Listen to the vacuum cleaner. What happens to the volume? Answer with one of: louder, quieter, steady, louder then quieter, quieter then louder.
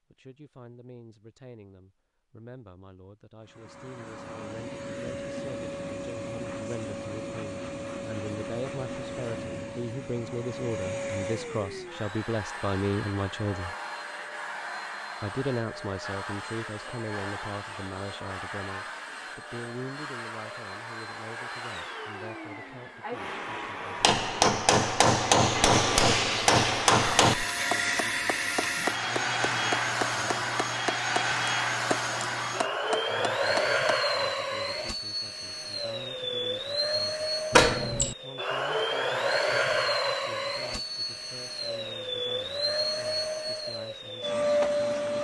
louder.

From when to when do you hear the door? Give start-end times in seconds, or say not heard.
37.5-38.1.